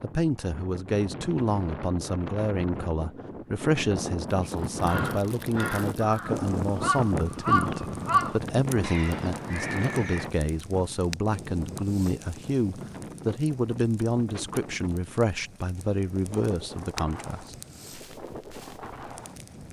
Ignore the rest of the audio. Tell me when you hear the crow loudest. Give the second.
8 s.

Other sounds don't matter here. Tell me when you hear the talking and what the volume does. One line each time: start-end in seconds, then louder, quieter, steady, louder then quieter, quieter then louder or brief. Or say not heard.
0.0-17.6 steady.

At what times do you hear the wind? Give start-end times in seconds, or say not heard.
0.0-19.6.